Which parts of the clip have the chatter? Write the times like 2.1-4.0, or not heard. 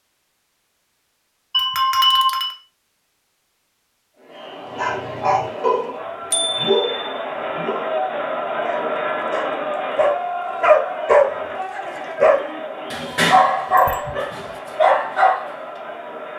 4.2-16.3.